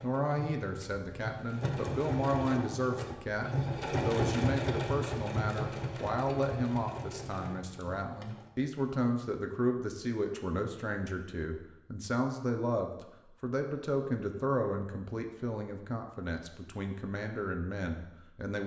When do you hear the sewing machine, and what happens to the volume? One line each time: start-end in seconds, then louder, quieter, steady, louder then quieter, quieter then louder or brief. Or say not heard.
0.0-8.5 louder then quieter.